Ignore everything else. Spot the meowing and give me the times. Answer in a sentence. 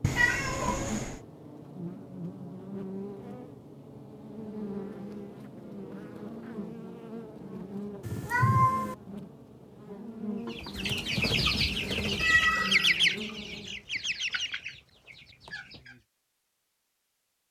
The meowing can be heard from 0.0 to 1.2 s, from 8.1 to 8.9 s and from 12.2 to 12.9 s.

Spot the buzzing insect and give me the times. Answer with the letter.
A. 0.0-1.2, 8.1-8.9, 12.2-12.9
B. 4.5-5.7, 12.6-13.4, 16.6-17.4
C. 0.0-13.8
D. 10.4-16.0
C.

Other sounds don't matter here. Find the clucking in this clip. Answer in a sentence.
You can hear the clucking from 10.4 to 16.0 s.